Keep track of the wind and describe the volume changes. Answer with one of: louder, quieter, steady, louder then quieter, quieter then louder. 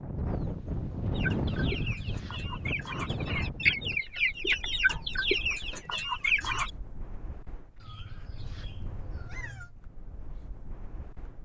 quieter.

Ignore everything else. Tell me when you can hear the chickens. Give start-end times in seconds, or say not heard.
1.1-6.7.